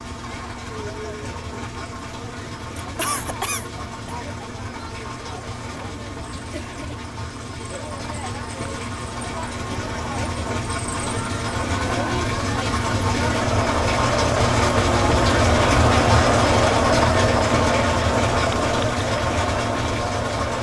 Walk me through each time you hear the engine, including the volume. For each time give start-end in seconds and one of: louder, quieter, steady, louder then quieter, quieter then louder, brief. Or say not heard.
0.0-20.5 louder.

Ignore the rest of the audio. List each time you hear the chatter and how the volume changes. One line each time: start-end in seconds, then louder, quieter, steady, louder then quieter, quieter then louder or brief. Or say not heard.
0.0-20.5 louder.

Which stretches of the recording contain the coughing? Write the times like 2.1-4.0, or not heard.
3.0-4.2.